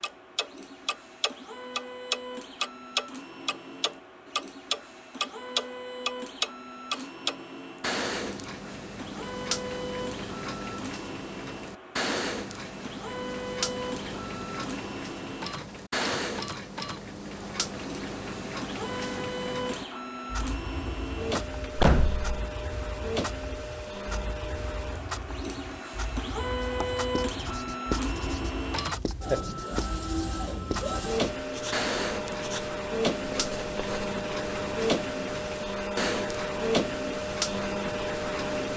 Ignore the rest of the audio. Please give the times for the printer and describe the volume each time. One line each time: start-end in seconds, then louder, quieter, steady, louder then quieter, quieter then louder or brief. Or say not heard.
0.0-38.7 louder.